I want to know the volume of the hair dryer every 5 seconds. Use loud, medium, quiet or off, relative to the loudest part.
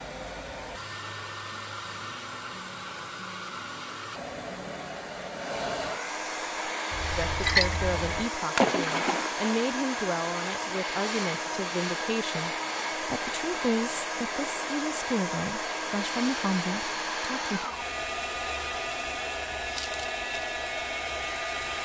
medium, loud, loud, loud, loud.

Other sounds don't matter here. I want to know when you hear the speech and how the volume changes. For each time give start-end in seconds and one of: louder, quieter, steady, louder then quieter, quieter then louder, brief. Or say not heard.
7.2-17.6 steady.